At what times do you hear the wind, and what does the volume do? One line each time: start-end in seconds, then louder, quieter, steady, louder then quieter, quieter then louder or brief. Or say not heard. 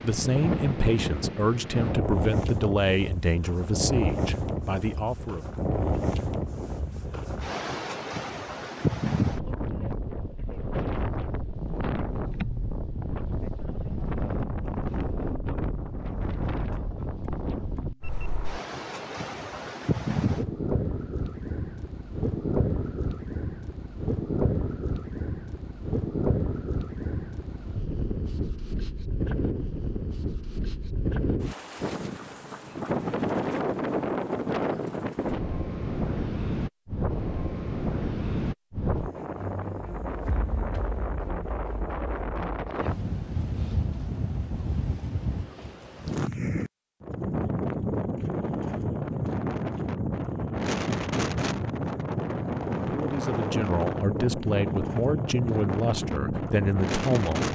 0.0-57.5 steady.